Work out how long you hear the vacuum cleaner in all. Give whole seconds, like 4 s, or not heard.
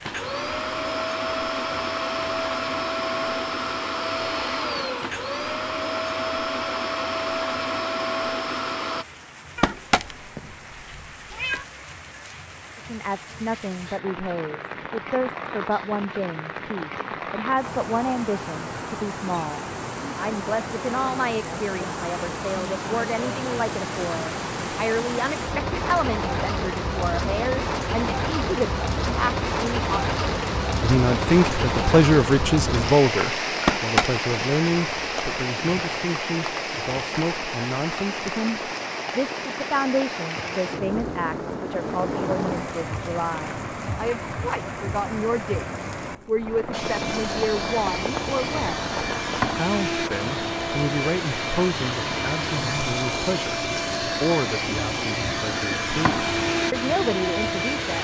20 s.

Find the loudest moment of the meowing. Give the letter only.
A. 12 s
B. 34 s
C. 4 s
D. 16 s
B.